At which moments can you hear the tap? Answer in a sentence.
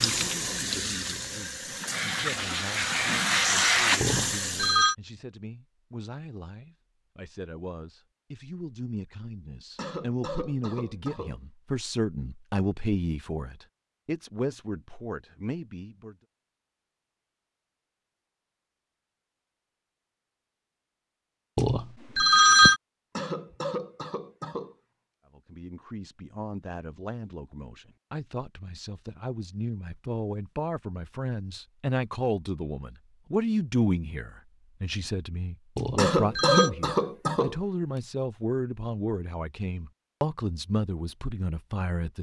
The tap can be heard from 0.0 to 4.8 s.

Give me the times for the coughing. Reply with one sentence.
The coughing can be heard from 9.8 to 11.4 s, from 23.1 to 24.8 s and from 36.0 to 37.5 s.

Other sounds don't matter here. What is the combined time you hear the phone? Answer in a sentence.
The phone can be heard for 3 seconds in total.